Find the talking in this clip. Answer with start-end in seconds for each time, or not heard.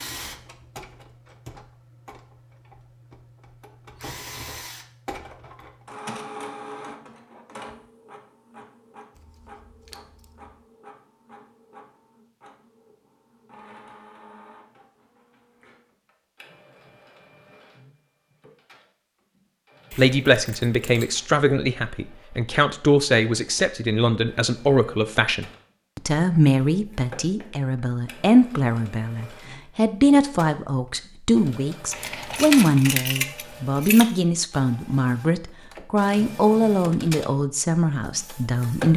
19.9-38.9.